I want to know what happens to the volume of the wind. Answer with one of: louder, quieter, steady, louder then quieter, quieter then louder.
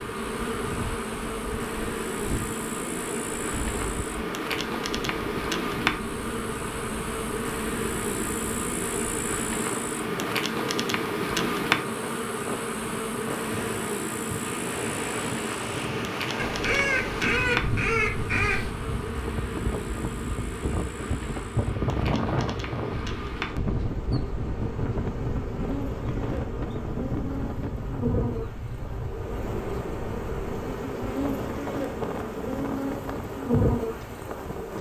louder then quieter.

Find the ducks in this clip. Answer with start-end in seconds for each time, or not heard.
16.4-18.7.